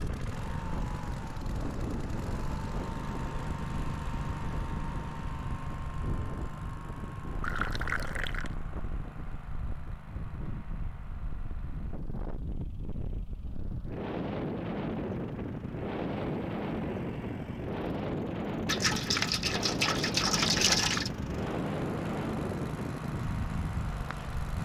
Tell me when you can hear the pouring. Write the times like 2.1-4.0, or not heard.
7.4-8.6, 18.6-21.1.